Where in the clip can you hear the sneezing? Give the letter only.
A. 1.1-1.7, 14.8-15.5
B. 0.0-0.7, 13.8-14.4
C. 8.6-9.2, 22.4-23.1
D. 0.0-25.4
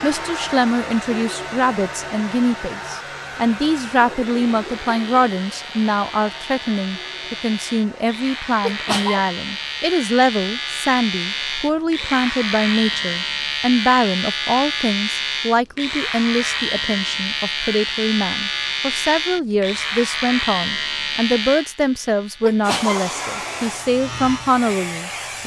C.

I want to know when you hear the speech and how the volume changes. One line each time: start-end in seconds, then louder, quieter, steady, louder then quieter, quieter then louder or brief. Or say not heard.
0.0-25.4 steady.